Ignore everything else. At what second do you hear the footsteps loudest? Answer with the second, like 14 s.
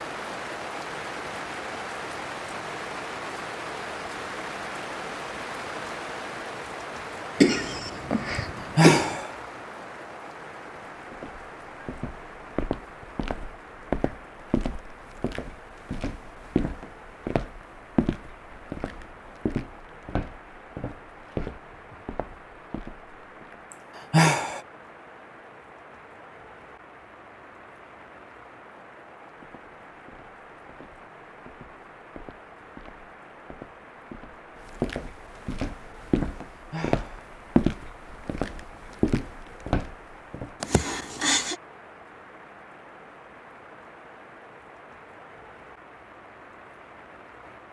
38 s.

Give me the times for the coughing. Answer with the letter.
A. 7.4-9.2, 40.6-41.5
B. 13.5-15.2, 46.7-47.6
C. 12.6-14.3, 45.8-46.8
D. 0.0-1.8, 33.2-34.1
A.